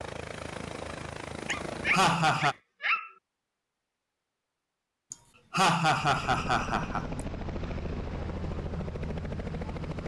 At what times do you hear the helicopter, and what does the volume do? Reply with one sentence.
You can hear the helicopter briefly from 0.0 to 2.6 s; and from 6.0 to 10.0 s, at a steady volume.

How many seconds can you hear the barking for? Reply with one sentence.
The barking can be heard for 2 seconds in total.